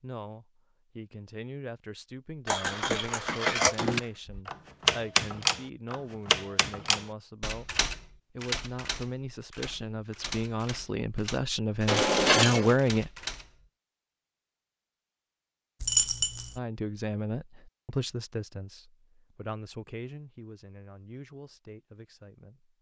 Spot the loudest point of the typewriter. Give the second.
5 s.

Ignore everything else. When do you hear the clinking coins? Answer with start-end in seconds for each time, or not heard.
2.5-4.4, 11.8-12.8, 15.8-16.6.